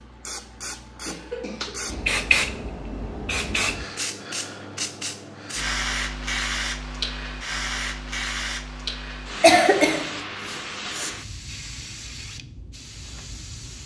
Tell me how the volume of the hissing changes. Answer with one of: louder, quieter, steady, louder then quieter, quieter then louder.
quieter.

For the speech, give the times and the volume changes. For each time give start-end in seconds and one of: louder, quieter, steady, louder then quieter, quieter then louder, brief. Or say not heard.
not heard.